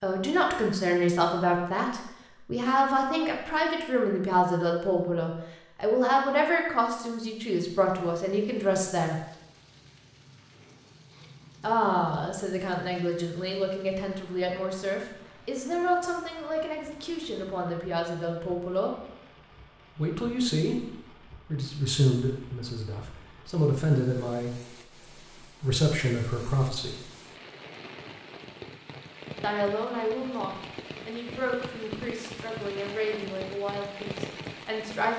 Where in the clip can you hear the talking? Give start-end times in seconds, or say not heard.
0.0-9.2, 11.6-18.9, 19.9-27.0, 29.4-35.1.